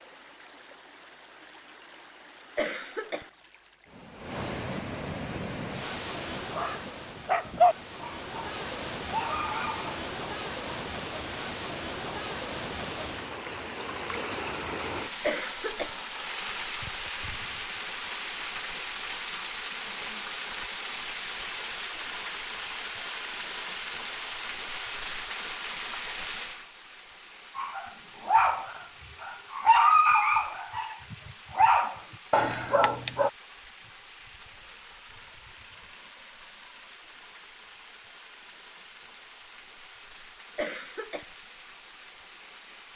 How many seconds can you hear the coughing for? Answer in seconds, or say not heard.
2 s.